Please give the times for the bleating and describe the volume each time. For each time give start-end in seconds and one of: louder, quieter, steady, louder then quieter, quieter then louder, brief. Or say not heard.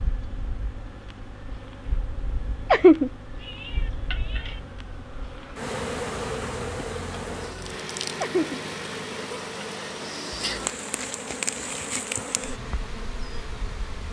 not heard.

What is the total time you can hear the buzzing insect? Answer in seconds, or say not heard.
14 s.